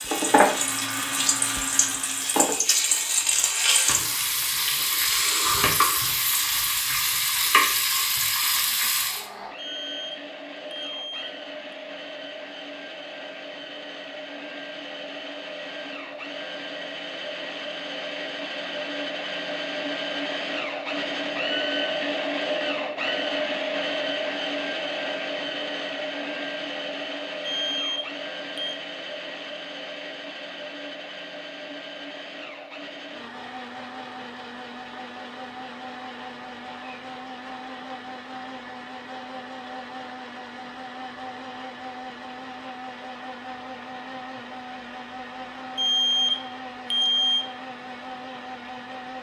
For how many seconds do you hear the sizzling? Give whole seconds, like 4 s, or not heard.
9 s.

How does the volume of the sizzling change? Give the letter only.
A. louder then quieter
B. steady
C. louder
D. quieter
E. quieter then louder
B.